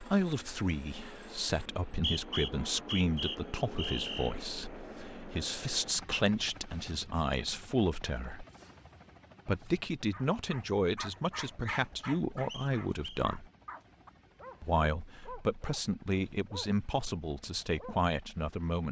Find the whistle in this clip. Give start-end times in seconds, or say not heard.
1.9-4.3, 12.4-13.2.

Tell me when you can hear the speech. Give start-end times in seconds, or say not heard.
0.0-8.4, 9.4-13.4, 14.6-18.8.